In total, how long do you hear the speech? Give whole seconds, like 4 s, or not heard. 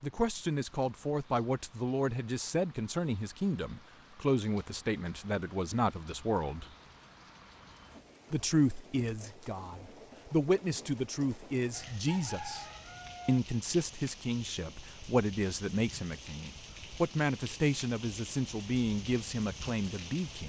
18 s.